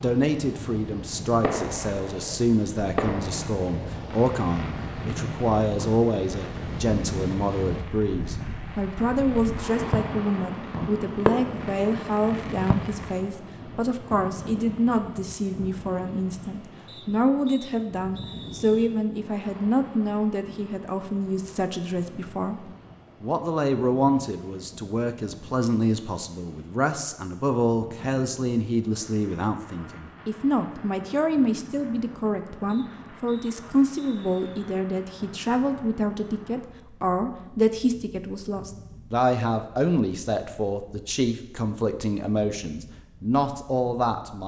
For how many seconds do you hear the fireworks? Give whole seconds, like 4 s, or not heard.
12 s.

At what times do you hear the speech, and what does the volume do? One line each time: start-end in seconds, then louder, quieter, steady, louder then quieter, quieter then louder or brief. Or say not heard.
0.0-22.6 steady
23.2-44.4 steady.